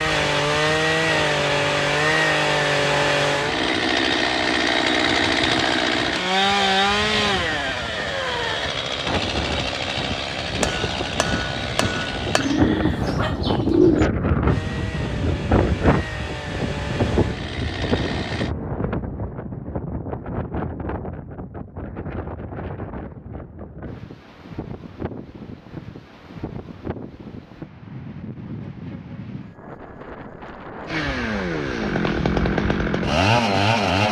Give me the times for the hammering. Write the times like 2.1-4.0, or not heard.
10.6-12.4.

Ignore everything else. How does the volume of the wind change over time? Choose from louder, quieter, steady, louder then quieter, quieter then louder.
louder then quieter.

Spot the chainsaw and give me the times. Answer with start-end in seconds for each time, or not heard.
0.0-12.6, 14.4-18.6, 30.9-34.0.